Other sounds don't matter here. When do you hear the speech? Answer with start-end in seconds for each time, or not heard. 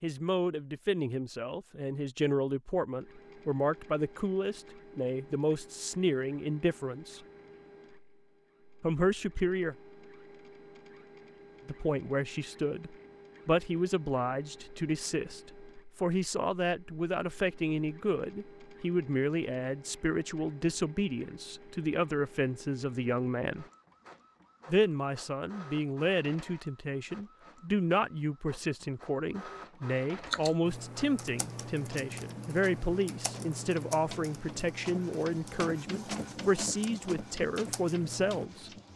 0.0-7.2, 8.8-9.8, 11.7-23.6, 24.6-38.7.